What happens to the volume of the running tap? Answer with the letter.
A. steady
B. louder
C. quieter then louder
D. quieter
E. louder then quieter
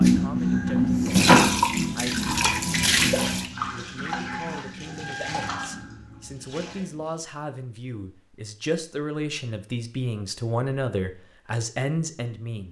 D.